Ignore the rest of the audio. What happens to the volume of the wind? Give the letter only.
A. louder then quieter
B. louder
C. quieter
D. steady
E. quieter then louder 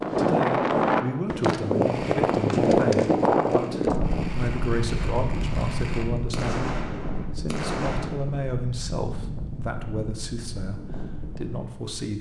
C.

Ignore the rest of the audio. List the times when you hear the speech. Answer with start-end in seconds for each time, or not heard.
0.1-12.1.